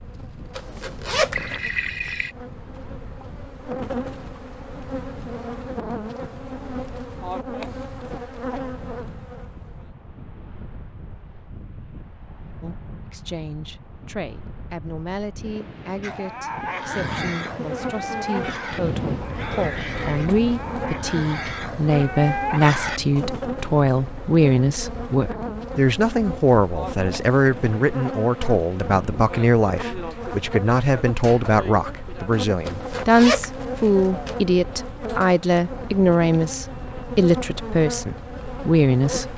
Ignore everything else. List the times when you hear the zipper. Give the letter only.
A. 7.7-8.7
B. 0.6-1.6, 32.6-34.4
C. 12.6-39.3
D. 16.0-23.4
B.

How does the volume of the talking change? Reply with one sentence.
The volume of the talking goes up.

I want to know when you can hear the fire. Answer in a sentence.
You can't hear the fire here.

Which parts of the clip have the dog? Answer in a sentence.
You can hear the dog from 16.0 to 23.4 s.